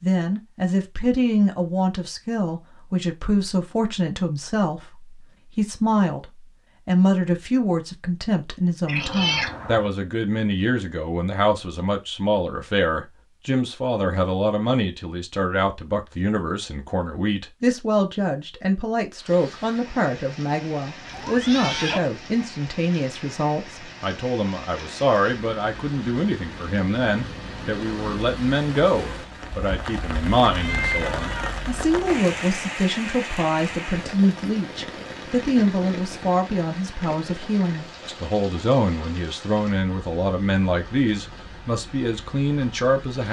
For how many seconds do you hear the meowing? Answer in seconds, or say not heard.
3 s.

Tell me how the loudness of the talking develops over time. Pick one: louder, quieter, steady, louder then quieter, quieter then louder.
steady.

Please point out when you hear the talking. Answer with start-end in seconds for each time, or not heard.
0.0-43.2.